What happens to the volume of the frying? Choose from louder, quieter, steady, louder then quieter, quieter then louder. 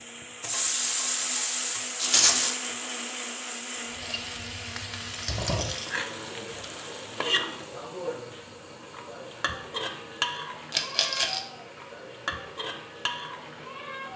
quieter.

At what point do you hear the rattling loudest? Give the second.
2 s.